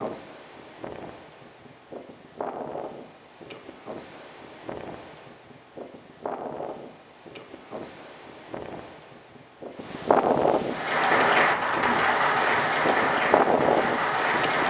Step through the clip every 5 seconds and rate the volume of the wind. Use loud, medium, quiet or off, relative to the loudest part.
quiet, quiet, loud.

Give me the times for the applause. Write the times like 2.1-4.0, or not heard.
10.7-14.6.